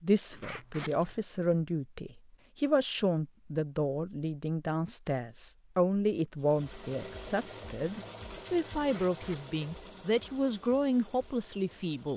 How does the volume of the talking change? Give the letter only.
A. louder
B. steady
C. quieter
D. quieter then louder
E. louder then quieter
B.